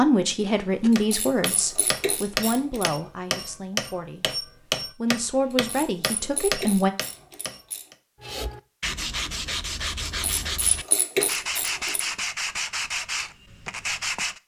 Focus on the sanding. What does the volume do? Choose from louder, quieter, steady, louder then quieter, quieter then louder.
steady.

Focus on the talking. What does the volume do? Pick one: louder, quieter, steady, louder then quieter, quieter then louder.
quieter then louder.